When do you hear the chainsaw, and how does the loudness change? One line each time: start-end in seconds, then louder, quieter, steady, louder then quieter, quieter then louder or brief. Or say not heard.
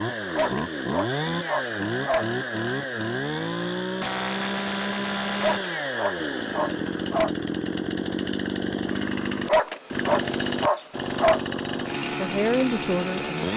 0.0-13.5 steady.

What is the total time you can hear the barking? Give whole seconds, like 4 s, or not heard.
6 s.